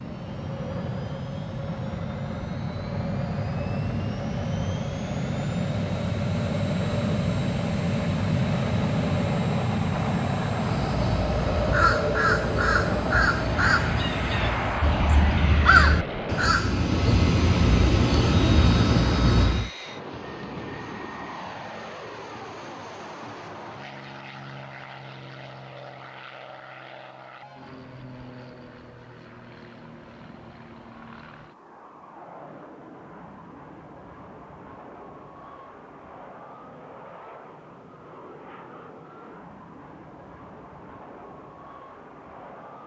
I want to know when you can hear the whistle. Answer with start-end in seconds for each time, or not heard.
not heard.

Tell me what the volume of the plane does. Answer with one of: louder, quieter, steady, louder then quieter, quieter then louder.
quieter.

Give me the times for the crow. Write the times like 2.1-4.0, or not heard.
10.6-19.7.